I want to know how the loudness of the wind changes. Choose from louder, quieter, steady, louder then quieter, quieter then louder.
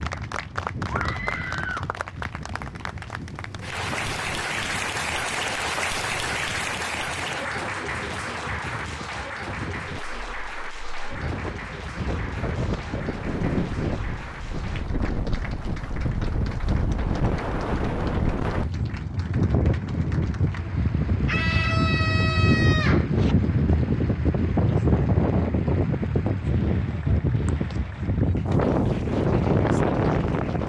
louder.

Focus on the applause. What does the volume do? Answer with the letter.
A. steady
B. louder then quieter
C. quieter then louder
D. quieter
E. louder
D.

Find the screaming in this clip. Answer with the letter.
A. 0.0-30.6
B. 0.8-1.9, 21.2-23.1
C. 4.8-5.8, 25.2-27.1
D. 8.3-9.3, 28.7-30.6
B.